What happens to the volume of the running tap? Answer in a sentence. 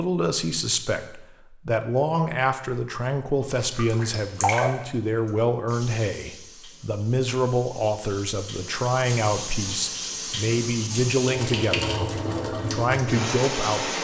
The loudness of the running tap goes down, then up.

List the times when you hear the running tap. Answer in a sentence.
The running tap can be heard from 3.4 to 13.9 s.